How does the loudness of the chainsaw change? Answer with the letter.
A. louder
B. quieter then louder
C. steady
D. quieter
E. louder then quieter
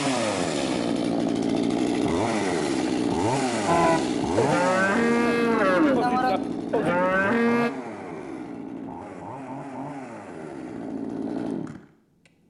D.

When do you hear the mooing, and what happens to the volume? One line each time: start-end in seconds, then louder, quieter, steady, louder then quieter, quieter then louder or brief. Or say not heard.
3.6-7.7 steady.